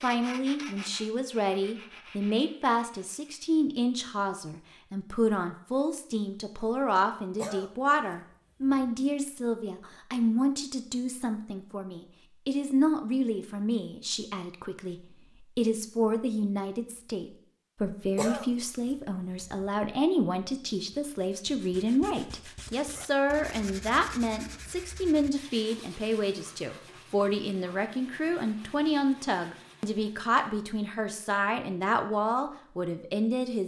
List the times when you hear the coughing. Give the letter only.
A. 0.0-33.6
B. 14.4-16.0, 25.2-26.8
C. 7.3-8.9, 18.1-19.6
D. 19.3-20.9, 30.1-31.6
C.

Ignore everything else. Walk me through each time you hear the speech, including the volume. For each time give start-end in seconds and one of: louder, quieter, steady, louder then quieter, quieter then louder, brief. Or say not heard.
0.0-33.6 steady.